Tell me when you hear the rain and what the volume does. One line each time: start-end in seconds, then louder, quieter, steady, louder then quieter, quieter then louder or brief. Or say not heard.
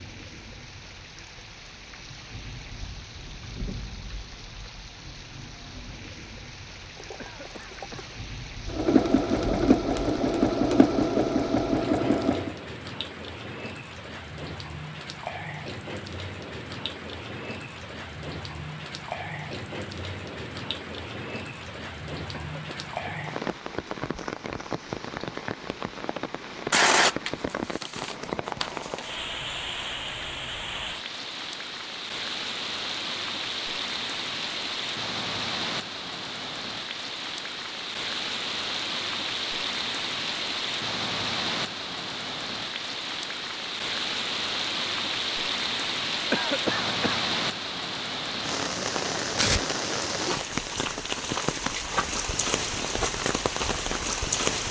0.0-54.6 louder.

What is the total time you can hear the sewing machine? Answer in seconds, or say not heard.
4 s.